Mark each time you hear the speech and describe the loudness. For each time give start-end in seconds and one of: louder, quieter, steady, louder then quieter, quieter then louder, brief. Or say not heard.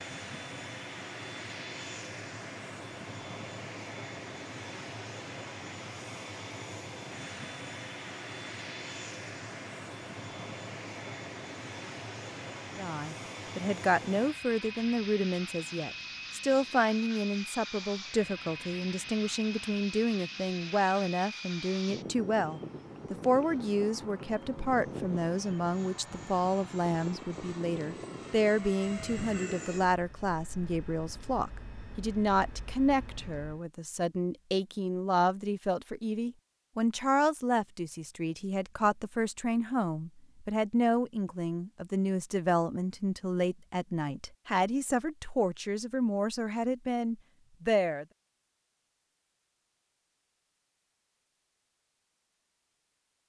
12.8-48.0 steady.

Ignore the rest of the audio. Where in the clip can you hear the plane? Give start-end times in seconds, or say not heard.
0.0-33.6.